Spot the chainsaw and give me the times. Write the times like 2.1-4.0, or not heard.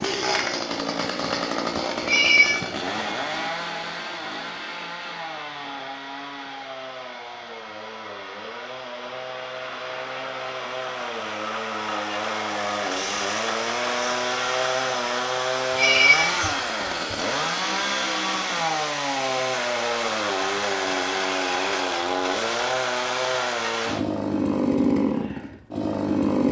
0.0-26.4.